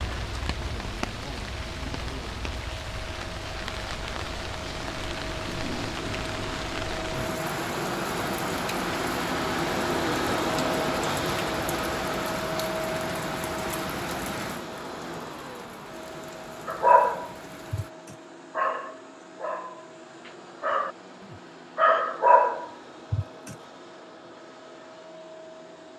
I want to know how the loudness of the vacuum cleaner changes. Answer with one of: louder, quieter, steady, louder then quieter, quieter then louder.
louder then quieter.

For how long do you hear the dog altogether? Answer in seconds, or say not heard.
7 s.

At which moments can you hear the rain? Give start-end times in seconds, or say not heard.
0.0-17.9.